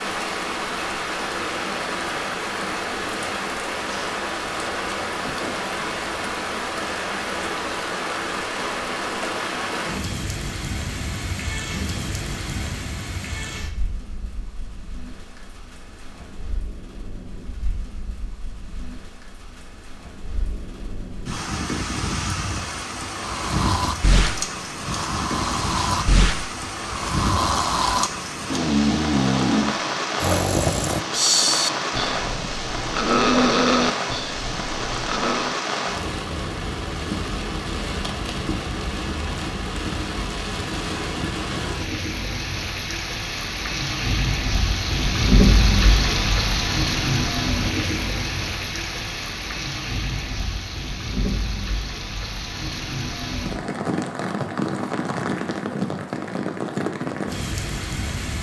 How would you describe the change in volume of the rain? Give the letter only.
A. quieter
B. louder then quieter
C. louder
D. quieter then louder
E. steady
D.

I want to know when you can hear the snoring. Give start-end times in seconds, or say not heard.
23.2-35.5.